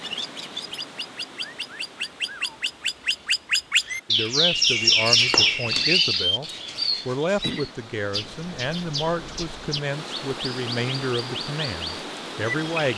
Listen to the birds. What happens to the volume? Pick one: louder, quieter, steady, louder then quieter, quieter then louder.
louder then quieter.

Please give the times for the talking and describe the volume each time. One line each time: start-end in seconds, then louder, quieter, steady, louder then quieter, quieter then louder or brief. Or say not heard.
4.0-12.9 steady.